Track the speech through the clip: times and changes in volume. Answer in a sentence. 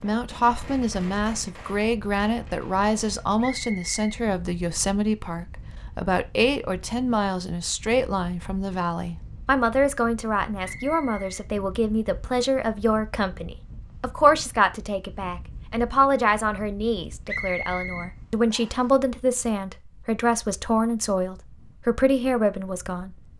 You can hear the speech from 0.0 to 23.3 s, at a steady volume.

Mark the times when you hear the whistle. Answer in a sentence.
You can hear the whistle from 3.4 to 4.0 s, from 10.6 to 11.4 s and from 17.2 to 18.9 s.